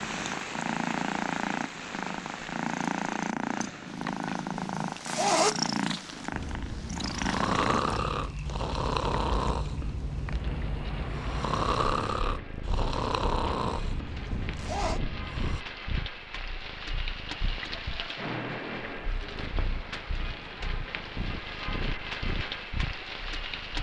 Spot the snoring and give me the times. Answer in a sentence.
You can hear the snoring from 6.3 to 15.7 s.